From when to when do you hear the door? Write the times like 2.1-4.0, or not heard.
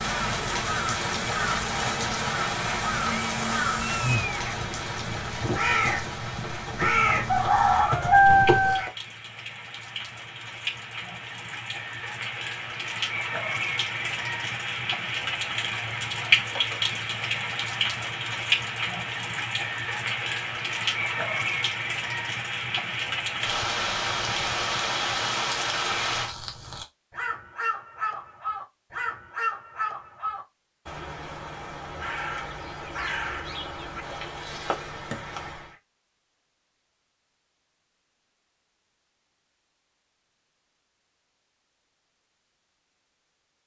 not heard.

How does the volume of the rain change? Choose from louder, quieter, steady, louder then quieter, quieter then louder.
quieter then louder.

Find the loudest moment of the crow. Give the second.
8 s.